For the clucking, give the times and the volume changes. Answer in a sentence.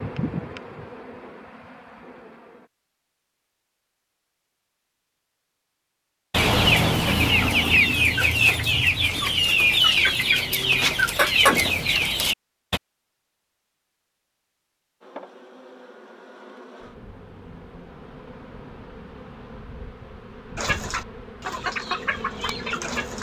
The clucking can be heard from 6.3 to 12.8 s, at a steady volume; and briefly from 20.6 to 23.1 s.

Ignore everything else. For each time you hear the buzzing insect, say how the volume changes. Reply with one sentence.
You can hear the buzzing insect briefly from 0.0 to 2.7 s; and from 15.0 to 23.1 s, getting louder.